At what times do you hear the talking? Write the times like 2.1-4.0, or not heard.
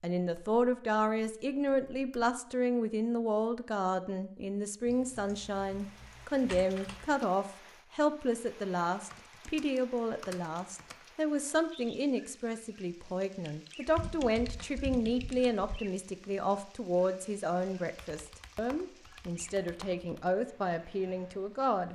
0.0-21.9.